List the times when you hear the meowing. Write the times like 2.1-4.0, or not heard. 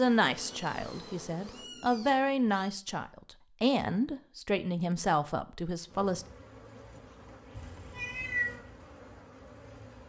0.3-2.7, 7.5-8.6.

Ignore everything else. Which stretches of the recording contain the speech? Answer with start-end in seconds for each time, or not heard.
0.0-6.2.